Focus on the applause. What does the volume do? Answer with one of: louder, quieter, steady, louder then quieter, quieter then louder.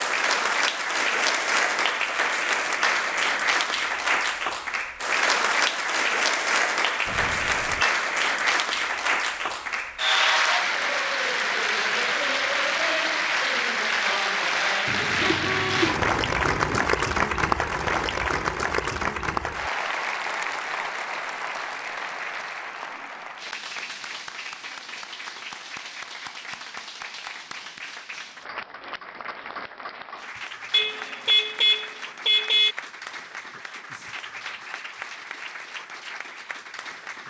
quieter.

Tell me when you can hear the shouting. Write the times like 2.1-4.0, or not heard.
not heard.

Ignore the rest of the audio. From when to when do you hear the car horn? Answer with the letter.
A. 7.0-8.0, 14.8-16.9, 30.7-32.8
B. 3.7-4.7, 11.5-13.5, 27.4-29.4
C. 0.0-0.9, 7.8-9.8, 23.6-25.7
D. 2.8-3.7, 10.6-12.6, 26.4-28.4
A.